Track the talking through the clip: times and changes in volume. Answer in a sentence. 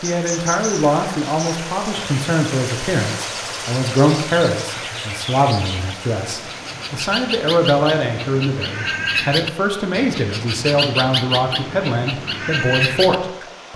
You can hear the talking from 0.0 to 13.7 s, at a steady volume.